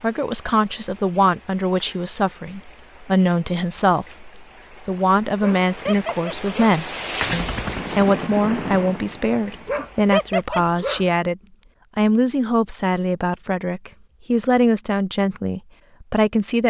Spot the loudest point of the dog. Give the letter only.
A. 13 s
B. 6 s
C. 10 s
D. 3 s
C.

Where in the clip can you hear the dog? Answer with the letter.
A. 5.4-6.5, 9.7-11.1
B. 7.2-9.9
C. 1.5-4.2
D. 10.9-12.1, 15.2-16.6
A.